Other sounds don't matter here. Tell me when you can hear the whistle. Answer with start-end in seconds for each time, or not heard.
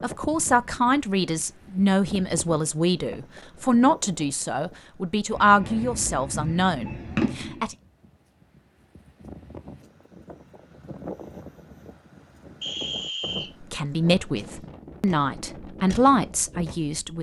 12.6-13.5.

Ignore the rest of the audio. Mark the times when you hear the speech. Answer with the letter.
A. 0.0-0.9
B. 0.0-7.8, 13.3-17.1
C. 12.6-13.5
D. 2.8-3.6
B.